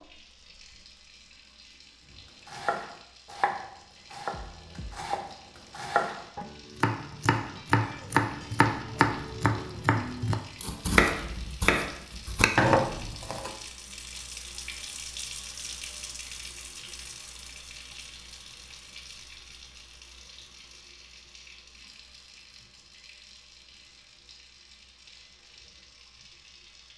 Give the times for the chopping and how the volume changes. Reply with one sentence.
You can hear the chopping from 2.5 to 13.5 s, getting louder.